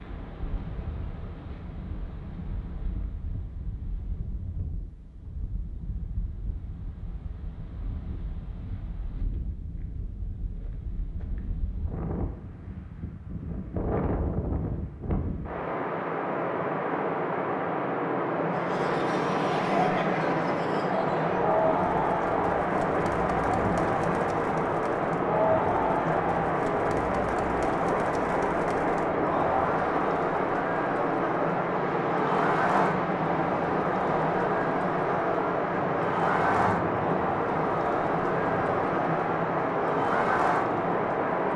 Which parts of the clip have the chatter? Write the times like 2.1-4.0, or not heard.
18.5-41.5.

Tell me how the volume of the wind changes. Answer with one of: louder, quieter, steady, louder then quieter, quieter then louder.
louder.